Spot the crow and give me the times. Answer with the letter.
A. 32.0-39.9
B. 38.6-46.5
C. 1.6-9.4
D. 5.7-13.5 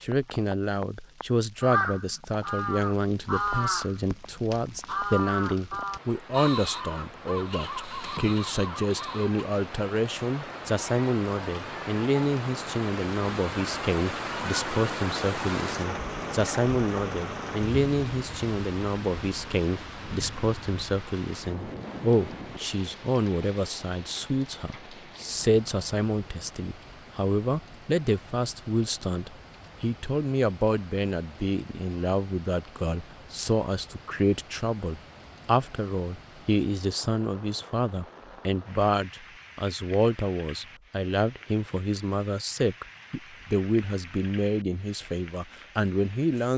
C.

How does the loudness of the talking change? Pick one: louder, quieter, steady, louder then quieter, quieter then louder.
steady.